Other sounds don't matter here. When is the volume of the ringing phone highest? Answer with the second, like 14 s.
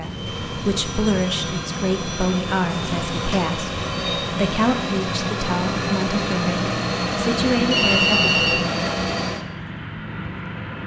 8 s.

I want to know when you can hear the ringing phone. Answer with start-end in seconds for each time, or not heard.
0.8-2.4, 7.7-8.7.